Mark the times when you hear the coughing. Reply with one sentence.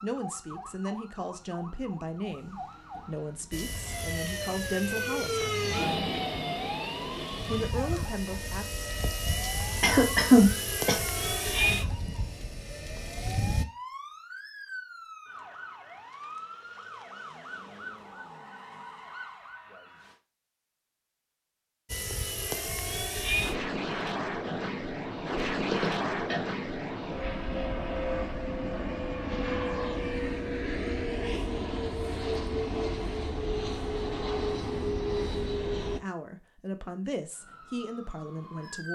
The coughing can be heard from 9.8 to 10.9 s and from 25.7 to 26.4 s.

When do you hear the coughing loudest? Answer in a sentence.
The loudest moment of the coughing is at 10 seconds.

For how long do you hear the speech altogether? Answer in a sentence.
The speech can be heard for 10 seconds in total.